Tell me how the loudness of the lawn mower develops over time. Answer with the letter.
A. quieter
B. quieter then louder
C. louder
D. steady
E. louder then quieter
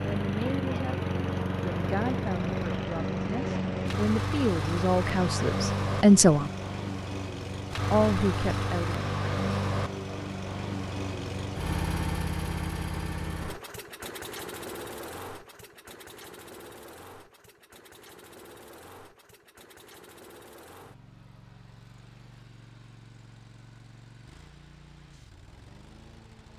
A.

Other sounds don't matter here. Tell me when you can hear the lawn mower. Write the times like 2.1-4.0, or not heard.
0.0-26.5.